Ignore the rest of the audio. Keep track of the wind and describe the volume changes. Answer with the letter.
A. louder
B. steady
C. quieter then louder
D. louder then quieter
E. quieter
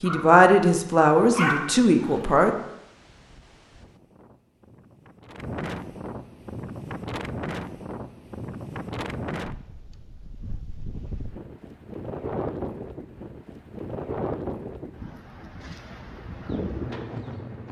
A.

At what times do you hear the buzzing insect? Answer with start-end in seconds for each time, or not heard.
15.8-17.6.